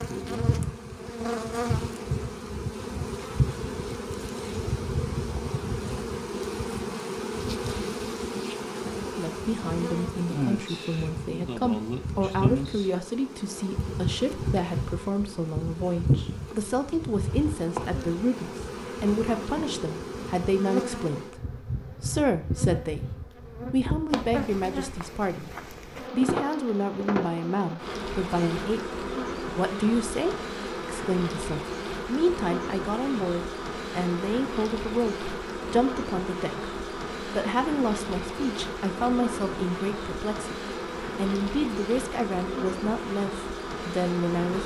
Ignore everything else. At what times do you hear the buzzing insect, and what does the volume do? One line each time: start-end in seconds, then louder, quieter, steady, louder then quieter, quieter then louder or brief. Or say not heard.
0.0-44.6 steady.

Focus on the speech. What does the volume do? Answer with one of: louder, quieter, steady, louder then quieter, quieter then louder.
steady.